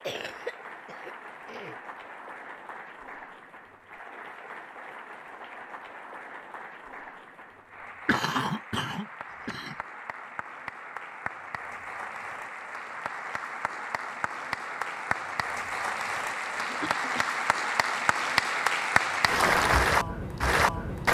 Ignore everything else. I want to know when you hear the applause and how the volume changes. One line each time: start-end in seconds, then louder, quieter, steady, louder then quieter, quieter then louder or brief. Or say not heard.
0.0-21.0 louder.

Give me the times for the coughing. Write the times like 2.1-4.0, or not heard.
0.0-1.8, 8.1-9.8, 16.6-17.3.